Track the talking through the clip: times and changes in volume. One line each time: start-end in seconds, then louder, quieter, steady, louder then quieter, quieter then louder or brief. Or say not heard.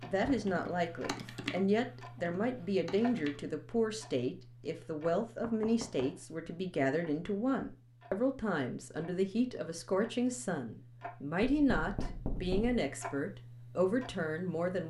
0.1-14.8 steady.